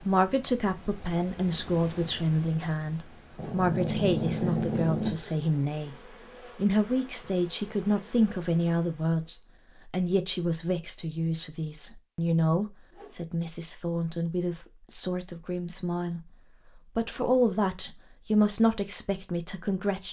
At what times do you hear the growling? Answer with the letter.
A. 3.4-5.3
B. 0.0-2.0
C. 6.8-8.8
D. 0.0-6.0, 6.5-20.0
A.